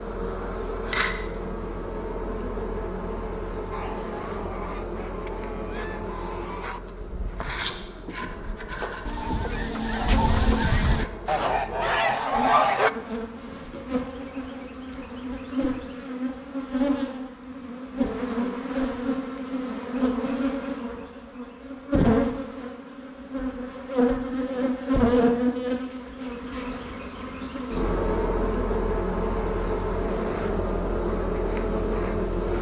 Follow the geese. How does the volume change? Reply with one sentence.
The loudness of the geese goes up.